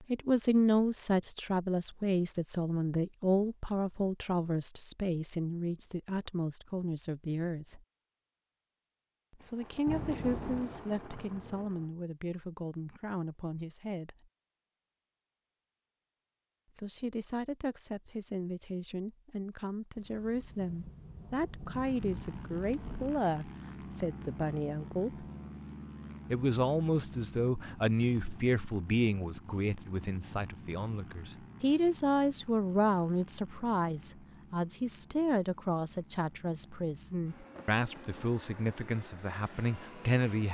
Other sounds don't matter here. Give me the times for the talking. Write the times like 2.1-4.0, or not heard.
0.0-7.8, 9.4-14.2, 16.8-25.2, 26.3-40.4.